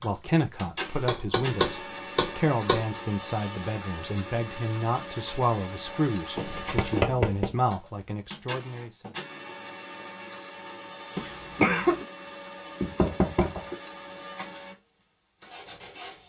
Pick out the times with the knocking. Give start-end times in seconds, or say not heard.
1.1-2.9, 6.3-7.5, 12.8-13.8.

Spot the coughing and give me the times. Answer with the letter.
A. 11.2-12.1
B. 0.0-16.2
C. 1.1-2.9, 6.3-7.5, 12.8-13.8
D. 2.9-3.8
A.